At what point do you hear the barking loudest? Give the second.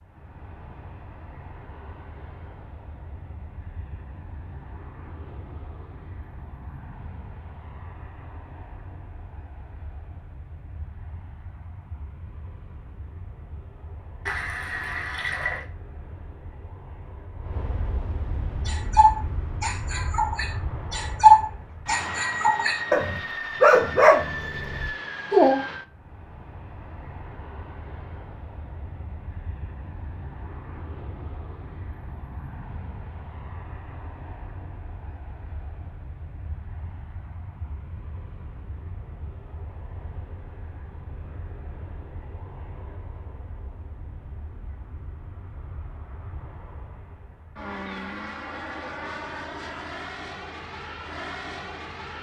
21 s.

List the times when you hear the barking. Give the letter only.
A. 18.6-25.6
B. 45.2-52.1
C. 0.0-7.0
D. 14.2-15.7
A.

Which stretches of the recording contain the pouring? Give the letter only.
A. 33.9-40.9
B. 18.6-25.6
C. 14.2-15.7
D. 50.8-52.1
C.